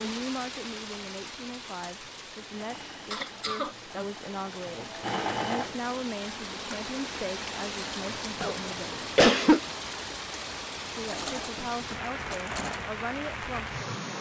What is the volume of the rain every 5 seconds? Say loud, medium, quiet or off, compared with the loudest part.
medium, loud, loud.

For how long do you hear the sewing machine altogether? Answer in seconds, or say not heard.
5 s.